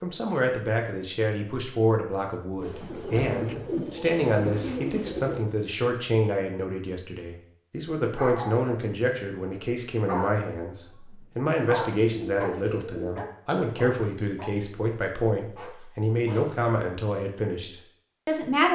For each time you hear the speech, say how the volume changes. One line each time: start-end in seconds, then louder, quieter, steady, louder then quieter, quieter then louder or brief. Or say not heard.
0.0-18.6 steady.